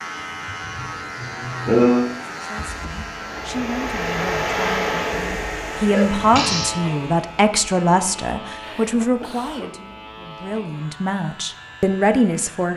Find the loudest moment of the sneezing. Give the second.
2 s.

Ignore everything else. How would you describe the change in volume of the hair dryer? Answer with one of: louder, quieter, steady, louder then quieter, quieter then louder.
louder then quieter.